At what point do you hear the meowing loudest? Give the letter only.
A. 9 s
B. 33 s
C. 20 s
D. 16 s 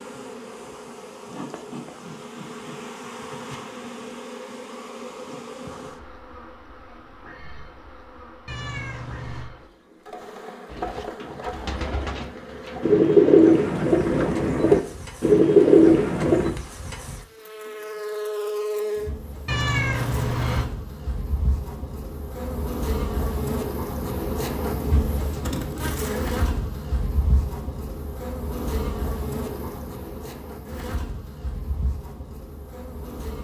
C.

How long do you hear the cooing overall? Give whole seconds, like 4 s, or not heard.
6 s.